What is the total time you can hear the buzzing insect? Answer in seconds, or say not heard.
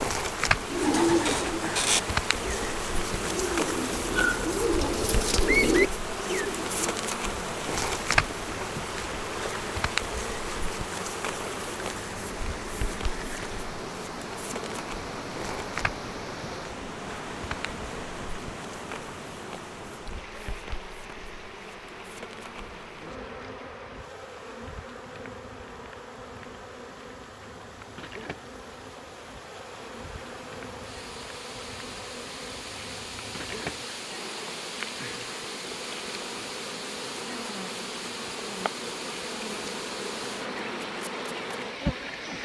42 s.